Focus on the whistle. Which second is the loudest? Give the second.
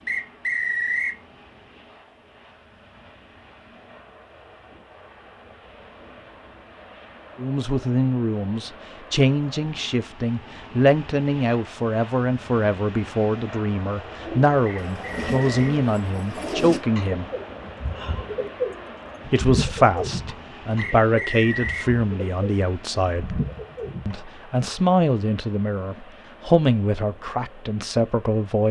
1 s.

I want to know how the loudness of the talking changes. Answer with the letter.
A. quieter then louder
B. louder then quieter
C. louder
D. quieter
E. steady
E.